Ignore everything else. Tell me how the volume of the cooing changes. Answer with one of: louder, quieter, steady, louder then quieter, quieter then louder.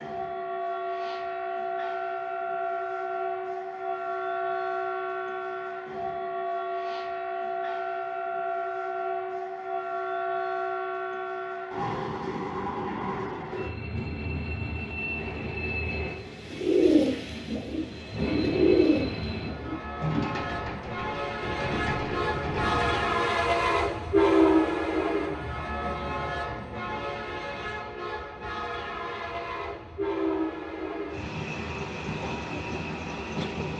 quieter then louder.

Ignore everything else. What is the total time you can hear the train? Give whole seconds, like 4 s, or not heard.
34 s.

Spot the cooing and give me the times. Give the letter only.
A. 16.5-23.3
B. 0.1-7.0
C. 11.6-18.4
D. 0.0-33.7
A.